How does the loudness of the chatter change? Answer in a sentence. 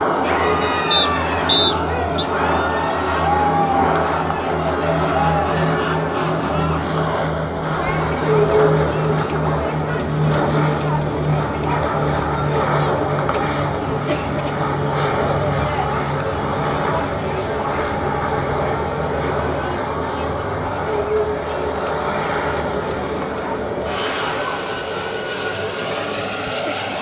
The loudness of the chatter goes down.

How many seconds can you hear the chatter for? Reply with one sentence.
You can hear the chatter for 27 seconds altogether.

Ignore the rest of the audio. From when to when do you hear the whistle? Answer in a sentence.
The whistle can be heard from 0.9 to 2.2 s.